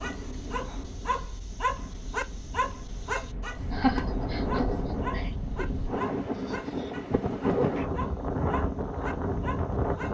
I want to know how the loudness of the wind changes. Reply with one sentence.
The loudness of the wind goes up.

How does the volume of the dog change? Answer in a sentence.
The volume of the dog goes down.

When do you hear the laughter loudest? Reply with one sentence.
The volume of the laughter peaks at 4 seconds.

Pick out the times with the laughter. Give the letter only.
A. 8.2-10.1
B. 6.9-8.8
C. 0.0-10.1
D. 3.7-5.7
D.